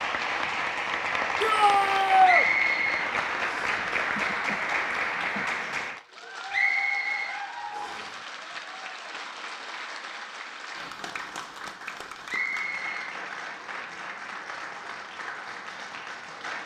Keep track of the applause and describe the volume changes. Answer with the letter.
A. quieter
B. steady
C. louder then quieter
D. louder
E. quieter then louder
A.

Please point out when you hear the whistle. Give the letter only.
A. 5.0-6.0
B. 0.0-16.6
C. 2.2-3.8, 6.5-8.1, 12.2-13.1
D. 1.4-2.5
C.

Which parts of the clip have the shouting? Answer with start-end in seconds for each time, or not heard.
1.4-2.5.